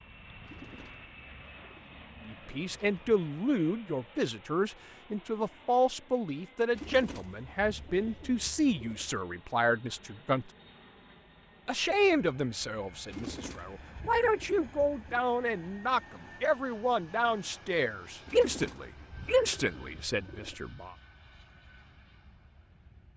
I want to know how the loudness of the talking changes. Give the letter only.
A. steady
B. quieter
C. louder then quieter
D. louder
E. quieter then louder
A.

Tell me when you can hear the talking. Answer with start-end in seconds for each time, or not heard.
2.2-10.5, 11.7-20.9.